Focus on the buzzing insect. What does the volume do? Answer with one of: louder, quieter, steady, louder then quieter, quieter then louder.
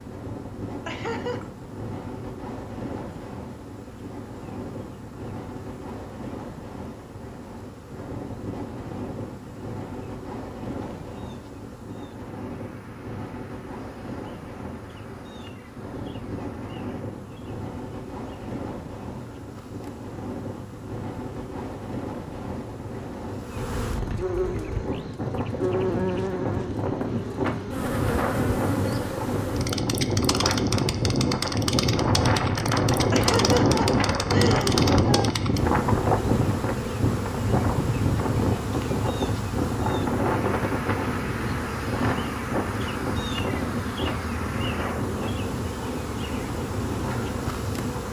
louder.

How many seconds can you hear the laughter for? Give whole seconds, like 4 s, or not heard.
3 s.